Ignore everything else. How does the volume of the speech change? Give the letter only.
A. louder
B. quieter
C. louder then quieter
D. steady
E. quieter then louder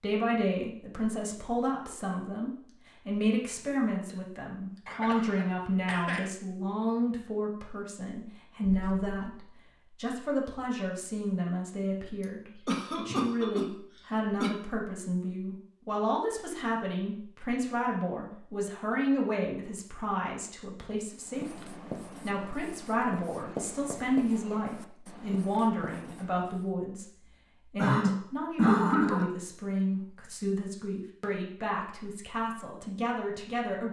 D.